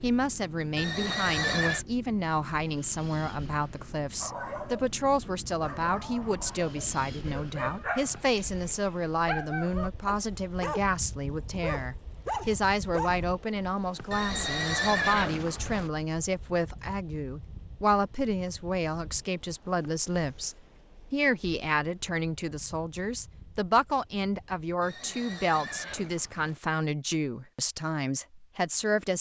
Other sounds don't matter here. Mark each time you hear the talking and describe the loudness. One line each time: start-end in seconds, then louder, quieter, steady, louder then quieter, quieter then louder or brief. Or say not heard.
0.0-29.1 steady.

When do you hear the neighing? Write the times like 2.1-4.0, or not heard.
0.8-1.9, 14.1-15.9, 24.8-26.6.